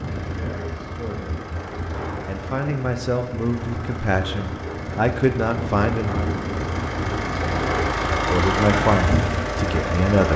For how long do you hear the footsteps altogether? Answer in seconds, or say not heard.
not heard.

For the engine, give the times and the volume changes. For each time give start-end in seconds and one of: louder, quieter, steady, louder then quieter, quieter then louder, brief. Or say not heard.
0.0-10.3 louder.